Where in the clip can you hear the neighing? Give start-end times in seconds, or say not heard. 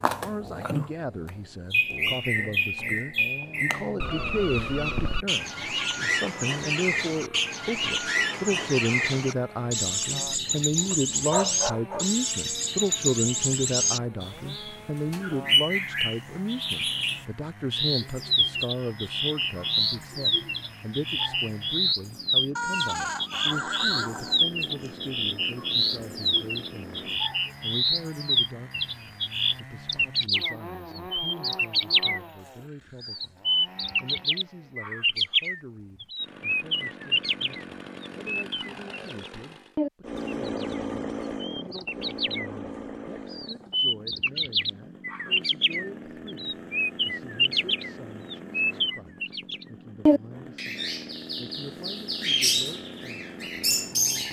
22.6-24.9.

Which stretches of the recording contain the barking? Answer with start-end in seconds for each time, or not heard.
10.9-12.1.